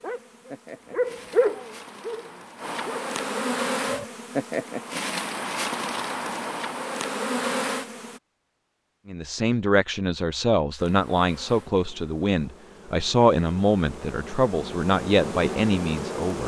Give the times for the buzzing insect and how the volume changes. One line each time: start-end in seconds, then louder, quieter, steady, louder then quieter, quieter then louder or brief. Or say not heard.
0.0-8.2 louder
10.8-16.4 louder.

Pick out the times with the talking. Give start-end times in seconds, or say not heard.
9.1-16.4.